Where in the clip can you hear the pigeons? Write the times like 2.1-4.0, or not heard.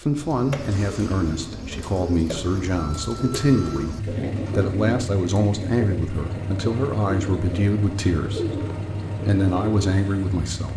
0.0-10.3.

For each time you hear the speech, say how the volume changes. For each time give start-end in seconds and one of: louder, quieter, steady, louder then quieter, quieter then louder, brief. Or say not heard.
0.0-8.7 steady
9.2-10.7 brief.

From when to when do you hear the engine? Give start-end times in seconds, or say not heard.
4.0-10.7.